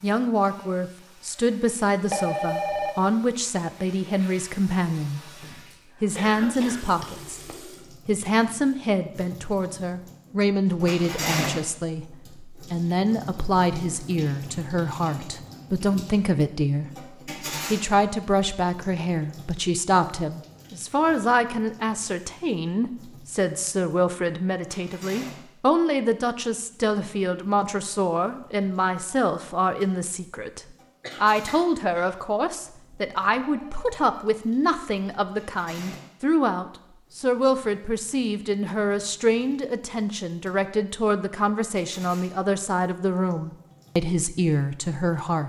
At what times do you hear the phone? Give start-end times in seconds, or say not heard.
2.1-3.0, 33.5-34.0.